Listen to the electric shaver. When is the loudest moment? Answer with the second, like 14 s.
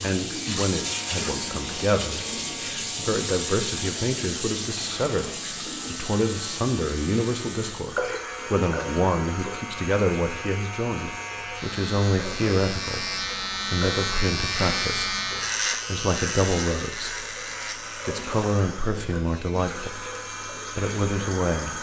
15 s.